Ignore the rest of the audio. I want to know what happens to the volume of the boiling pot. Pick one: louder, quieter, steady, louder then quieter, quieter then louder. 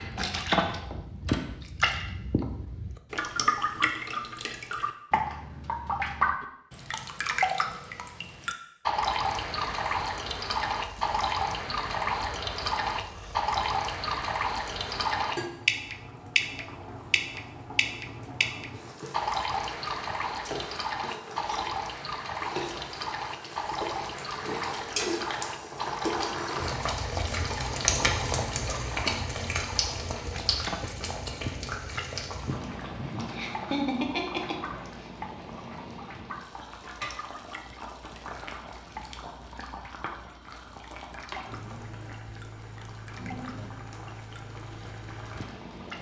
louder then quieter.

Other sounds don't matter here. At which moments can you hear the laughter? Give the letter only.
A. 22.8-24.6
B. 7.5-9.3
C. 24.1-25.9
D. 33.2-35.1
D.